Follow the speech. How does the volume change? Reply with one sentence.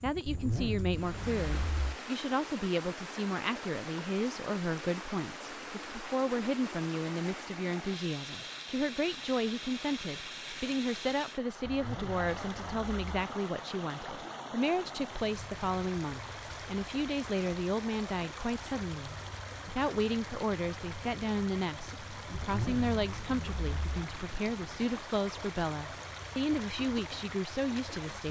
The loudness of the speech stays about the same.